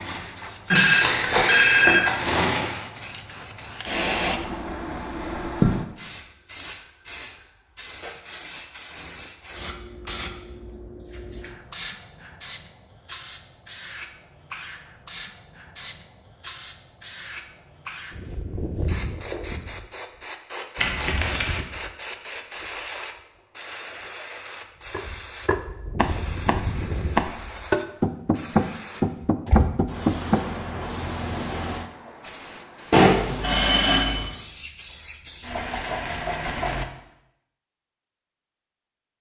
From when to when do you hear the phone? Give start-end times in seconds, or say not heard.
0.7-2.5, 20.8-21.5, 32.9-34.3.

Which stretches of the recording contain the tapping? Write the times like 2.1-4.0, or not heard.
24.9-30.4.